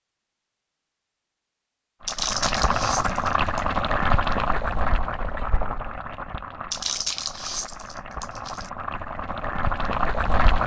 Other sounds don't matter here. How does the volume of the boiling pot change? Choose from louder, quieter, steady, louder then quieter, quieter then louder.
quieter then louder.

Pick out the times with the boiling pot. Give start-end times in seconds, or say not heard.
2.0-10.6.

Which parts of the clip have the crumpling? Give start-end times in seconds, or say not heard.
2.0-3.6, 6.7-8.7.